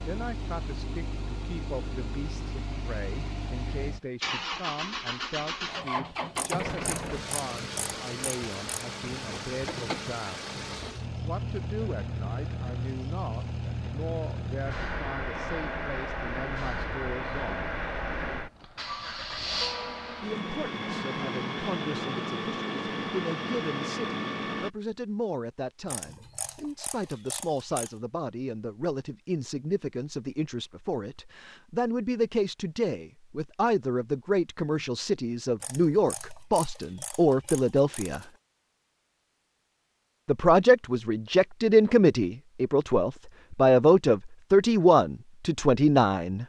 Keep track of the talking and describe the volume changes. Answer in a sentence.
The loudness of the talking goes up.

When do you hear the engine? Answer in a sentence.
You can hear the engine from 0.0 to 24.7 s.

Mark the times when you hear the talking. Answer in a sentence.
The talking can be heard from 0.0 to 10.6 s, from 11.2 to 17.7 s, from 20.2 to 38.2 s and from 40.2 to 46.4 s.